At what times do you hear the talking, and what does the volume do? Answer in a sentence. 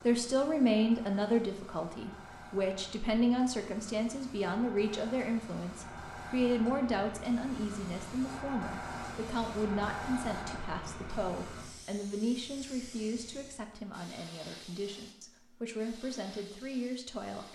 You can hear the talking from 0.0 to 17.5 s, getting quieter.